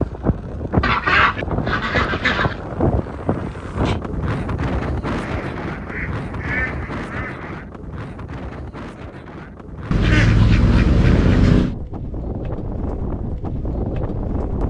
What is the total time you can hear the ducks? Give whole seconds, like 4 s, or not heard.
6 s.